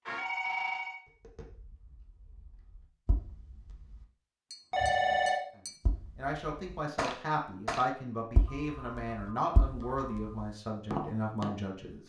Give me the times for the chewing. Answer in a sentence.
You can't hear the chewing here.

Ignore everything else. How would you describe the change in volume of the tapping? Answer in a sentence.
The volume of the tapping goes up.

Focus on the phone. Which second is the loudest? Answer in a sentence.
The volume of the phone peaks at 5 seconds.